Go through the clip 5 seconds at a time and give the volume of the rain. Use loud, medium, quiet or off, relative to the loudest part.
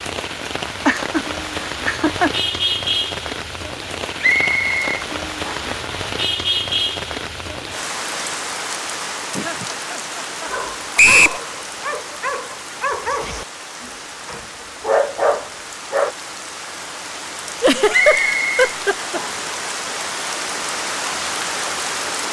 loud, loud, medium, medium, loud.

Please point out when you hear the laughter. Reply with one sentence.
The laughter can be heard from 0.8 to 1.2 s, from 1.9 to 2.3 s, from 9.3 to 10.9 s and from 17.6 to 19.2 s.